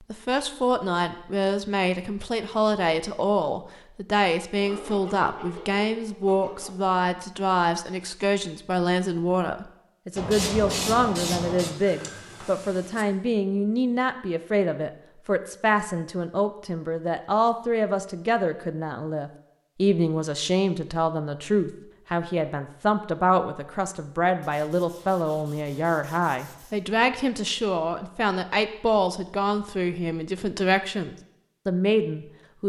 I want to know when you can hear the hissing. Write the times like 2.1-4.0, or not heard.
10.2-13.1.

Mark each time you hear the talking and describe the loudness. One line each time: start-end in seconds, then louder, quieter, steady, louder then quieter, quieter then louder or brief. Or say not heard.
0.1-32.6 steady.